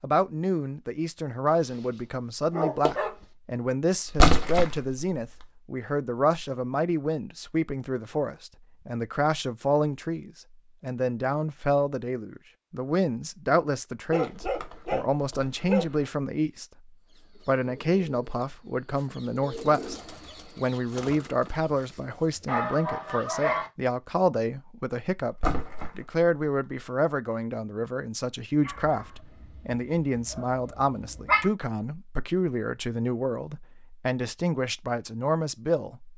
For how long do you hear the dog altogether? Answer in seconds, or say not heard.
7 s.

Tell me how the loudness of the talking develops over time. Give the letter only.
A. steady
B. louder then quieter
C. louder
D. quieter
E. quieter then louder
A.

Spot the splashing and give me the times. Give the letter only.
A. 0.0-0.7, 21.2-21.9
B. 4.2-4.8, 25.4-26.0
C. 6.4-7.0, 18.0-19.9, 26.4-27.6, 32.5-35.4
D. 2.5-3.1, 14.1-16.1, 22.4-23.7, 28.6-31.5
B.